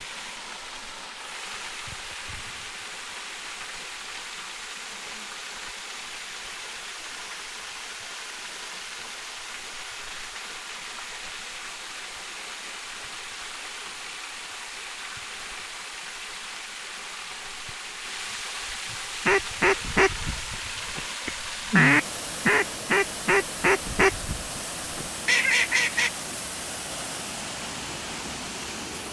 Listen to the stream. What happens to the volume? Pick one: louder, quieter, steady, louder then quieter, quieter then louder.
steady.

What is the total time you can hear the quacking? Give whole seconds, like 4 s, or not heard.
7 s.